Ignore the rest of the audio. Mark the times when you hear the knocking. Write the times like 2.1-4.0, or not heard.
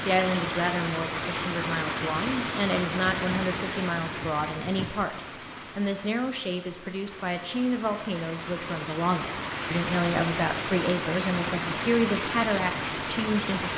not heard.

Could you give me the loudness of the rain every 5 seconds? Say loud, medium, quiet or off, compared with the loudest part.
loud, medium, loud.